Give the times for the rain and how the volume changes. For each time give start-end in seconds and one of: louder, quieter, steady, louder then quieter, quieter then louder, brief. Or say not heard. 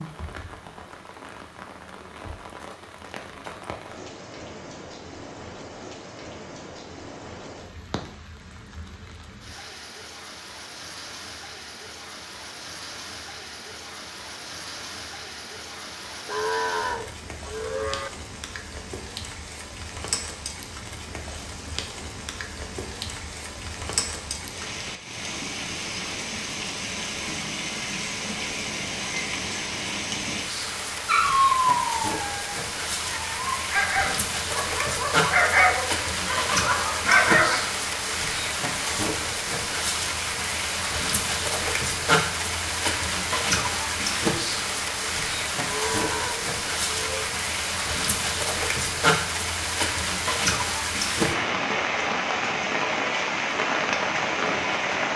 0.0-55.1 louder.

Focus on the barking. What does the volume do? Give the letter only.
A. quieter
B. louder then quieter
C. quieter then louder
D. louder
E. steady
C.